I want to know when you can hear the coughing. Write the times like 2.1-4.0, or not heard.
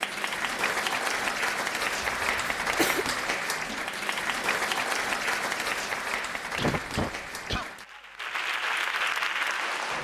2.0-3.0, 6.5-7.7.